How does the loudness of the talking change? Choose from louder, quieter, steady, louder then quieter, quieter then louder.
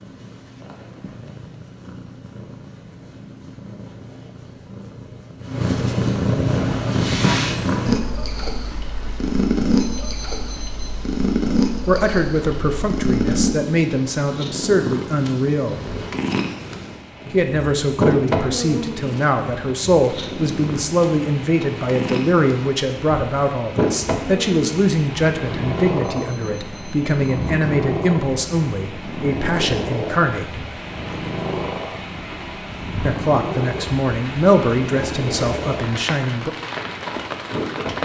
steady.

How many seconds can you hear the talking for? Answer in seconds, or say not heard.
21 s.